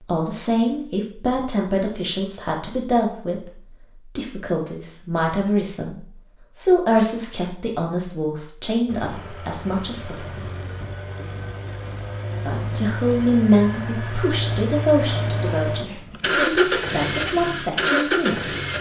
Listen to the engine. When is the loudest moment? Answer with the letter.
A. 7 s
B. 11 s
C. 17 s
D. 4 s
C.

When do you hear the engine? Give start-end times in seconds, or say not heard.
8.8-18.7.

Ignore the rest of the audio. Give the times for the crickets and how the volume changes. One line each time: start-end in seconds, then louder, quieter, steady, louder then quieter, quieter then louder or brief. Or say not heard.
not heard.